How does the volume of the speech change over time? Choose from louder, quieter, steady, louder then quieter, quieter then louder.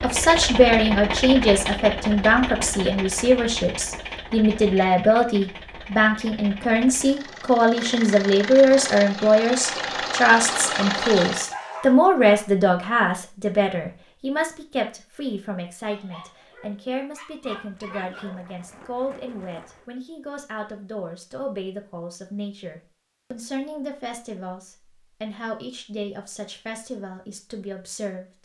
quieter.